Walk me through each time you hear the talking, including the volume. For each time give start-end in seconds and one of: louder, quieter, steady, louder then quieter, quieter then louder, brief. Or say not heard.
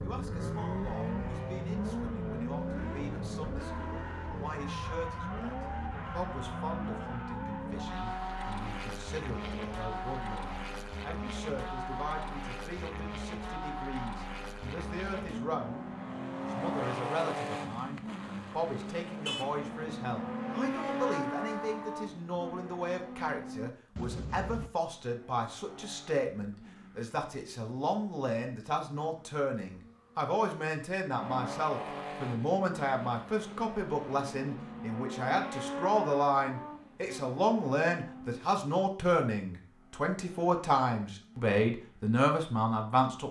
0.0-43.2 louder.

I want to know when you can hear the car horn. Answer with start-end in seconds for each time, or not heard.
19.2-20.0, 23.9-24.7.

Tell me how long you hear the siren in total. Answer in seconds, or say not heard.
not heard.